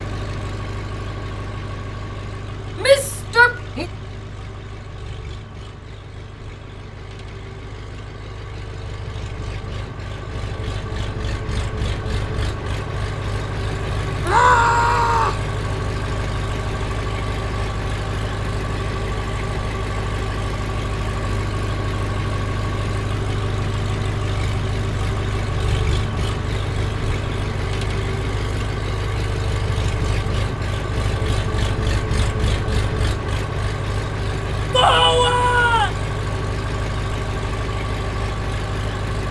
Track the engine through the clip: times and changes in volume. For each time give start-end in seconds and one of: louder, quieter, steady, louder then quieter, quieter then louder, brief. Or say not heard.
0.0-39.2 louder.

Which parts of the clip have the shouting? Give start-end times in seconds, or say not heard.
2.8-3.9, 14.2-15.4, 34.7-35.9.